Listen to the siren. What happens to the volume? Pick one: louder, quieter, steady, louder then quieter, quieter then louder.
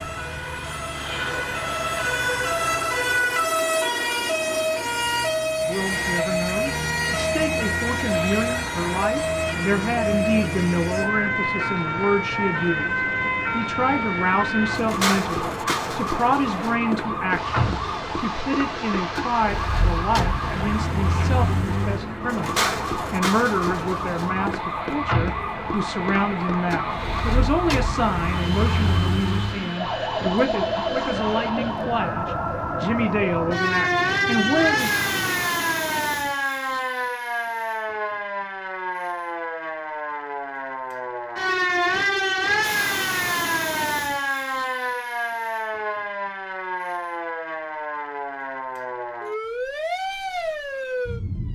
steady.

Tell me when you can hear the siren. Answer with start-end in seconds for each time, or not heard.
0.0-51.5.